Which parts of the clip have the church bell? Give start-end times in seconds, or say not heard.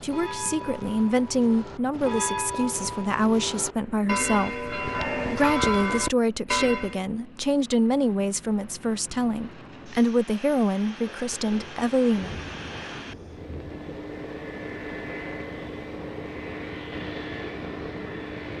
0.0-7.0.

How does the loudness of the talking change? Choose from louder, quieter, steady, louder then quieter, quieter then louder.
steady.